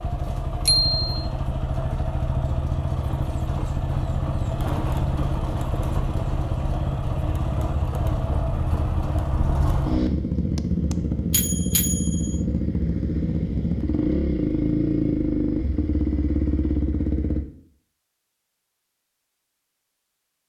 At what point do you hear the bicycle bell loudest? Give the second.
1 s.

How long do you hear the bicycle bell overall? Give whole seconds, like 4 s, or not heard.
2 s.